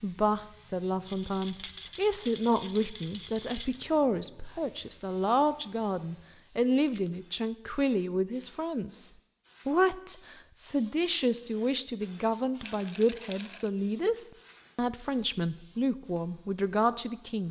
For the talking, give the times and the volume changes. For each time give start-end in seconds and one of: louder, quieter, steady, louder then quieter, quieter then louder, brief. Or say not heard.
0.0-17.4 steady.